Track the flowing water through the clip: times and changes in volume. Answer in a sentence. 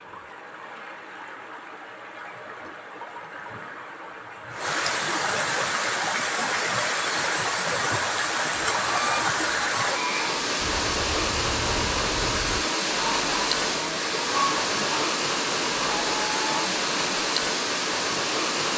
The flowing water can be heard from 0.0 to 18.7 s, getting louder.